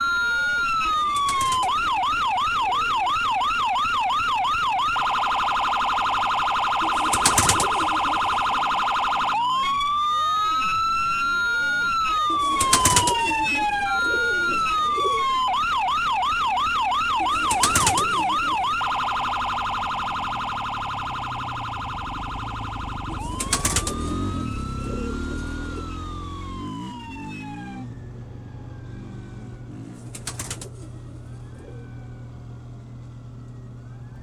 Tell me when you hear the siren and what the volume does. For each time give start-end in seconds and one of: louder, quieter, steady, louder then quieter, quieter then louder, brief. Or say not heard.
0.0-34.1 quieter.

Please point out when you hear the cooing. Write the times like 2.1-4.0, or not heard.
0.8-3.2, 6.8-8.6, 12.2-15.2, 17.2-18.6, 23.1-25.9, 29.8-31.9.